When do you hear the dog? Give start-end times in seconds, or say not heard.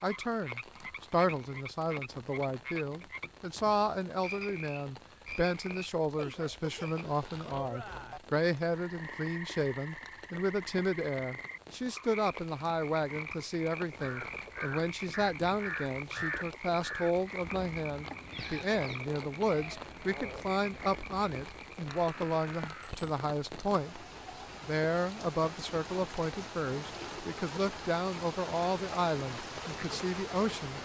not heard.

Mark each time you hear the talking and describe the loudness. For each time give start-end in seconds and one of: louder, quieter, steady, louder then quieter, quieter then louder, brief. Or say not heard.
0.0-30.8 steady.